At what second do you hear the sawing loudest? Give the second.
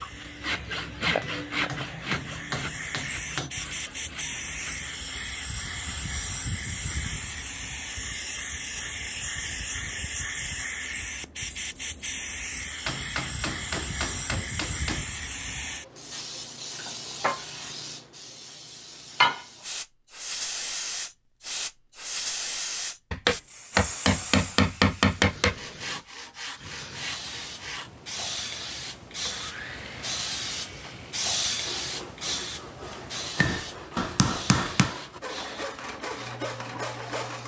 1 s.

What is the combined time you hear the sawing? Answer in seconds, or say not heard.
17 s.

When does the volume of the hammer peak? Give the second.
25 s.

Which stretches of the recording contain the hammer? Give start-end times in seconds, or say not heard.
1.2-3.5, 12.8-15.1, 23.1-25.6, 33.4-34.9.